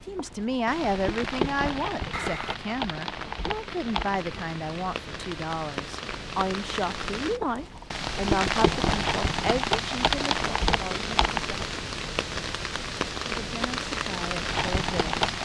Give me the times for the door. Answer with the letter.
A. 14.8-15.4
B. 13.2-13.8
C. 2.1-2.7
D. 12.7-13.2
C.